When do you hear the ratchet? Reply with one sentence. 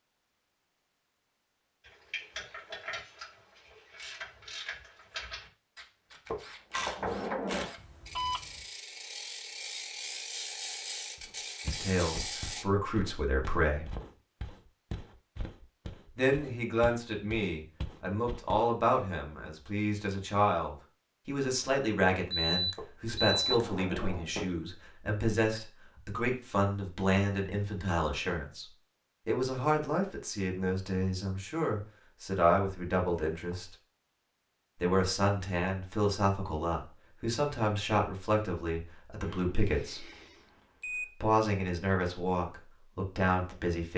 You can hear the ratchet from 1.8 to 12.7 s.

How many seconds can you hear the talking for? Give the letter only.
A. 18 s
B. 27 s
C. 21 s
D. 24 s
B.